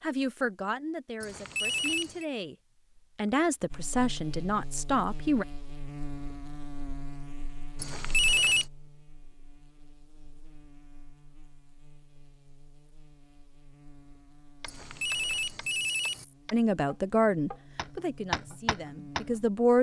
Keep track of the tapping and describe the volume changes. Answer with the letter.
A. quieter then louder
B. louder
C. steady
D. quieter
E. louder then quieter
A.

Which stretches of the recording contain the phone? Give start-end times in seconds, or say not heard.
1.2-2.2, 7.8-8.7, 14.7-16.2.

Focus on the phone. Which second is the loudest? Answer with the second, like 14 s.
8 s.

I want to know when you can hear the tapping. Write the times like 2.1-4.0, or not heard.
14.6-19.4.